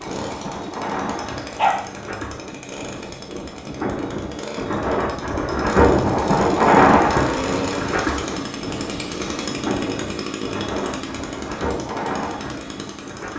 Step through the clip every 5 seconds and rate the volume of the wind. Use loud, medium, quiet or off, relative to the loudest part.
medium, loud, medium.